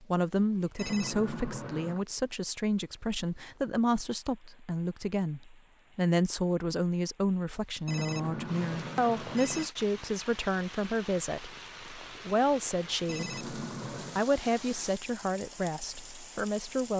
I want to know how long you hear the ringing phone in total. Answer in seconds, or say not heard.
4 s.